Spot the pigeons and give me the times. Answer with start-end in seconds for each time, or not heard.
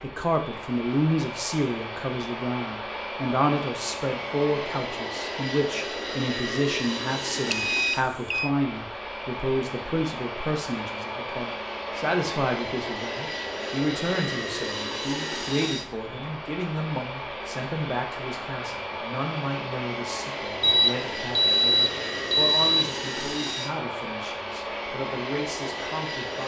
not heard.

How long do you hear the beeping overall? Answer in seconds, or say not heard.
3 s.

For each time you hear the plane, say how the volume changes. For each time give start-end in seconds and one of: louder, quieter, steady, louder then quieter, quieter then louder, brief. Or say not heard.
0.0-26.4 steady.